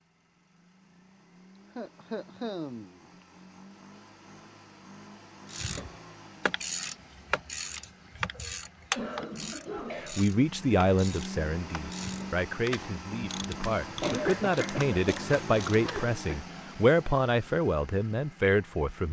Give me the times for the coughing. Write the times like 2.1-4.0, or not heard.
1.8-3.0, 8.3-10.2, 14.0-16.4.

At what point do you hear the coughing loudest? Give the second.
14 s.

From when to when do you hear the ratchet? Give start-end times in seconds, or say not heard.
5.5-16.1.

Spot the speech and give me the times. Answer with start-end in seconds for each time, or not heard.
9.9-19.0.